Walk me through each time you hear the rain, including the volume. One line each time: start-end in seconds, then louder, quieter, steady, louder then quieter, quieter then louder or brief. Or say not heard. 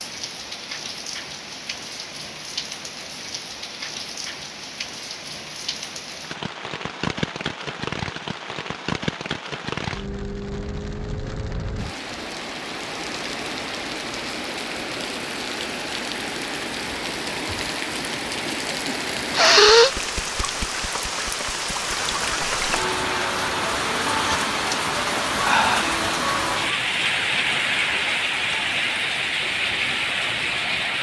0.0-30.9 louder.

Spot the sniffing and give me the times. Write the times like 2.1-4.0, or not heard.
18.7-19.9.